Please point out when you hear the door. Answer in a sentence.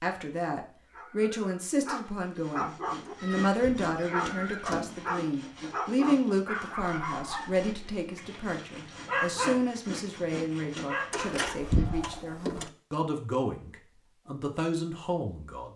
The door can be heard from 3.0 to 5.1 s and from 11.1 to 12.7 s.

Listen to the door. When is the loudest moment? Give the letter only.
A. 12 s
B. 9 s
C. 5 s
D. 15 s
A.